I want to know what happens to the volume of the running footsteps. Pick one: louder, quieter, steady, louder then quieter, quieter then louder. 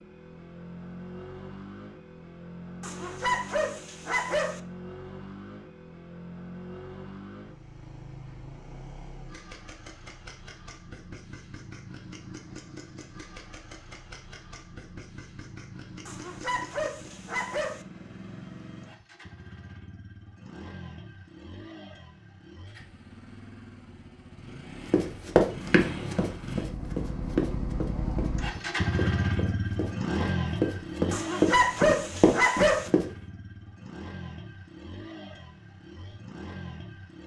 quieter then louder.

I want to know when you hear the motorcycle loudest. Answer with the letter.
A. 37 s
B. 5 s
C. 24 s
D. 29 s
D.